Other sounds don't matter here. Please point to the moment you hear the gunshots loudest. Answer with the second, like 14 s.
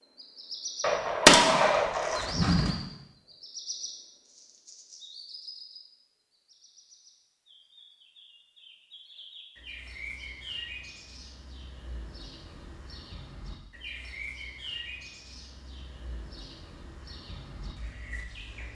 1 s.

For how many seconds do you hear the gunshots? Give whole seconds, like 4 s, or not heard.
2 s.